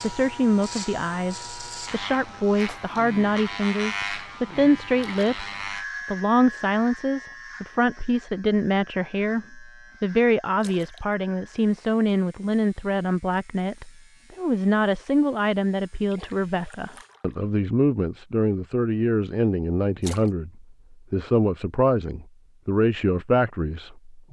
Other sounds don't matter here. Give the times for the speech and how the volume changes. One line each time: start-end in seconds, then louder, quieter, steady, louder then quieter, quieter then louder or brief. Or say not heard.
0.0-24.2 steady.